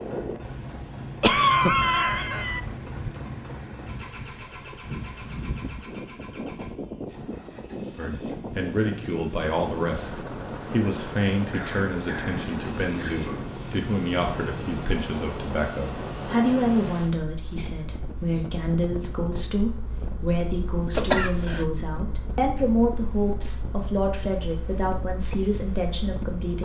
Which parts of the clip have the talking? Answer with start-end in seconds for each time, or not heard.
8.0-26.5.